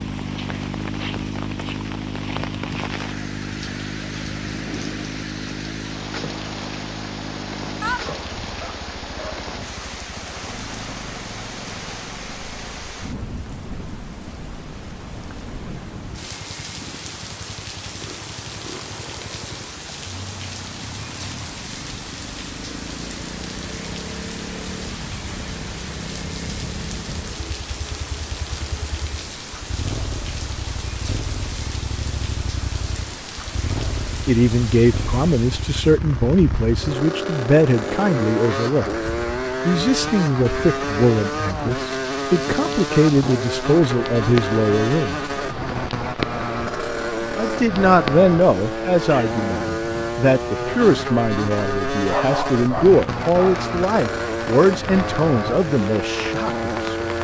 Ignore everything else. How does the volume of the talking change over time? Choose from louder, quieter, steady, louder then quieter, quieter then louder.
steady.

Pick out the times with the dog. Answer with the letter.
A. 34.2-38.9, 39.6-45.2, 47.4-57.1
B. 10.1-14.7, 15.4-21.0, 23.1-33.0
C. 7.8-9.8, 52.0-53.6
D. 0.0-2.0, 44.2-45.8
C.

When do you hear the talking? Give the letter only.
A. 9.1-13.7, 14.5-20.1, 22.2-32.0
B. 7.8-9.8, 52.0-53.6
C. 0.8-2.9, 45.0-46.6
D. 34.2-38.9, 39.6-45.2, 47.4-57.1
D.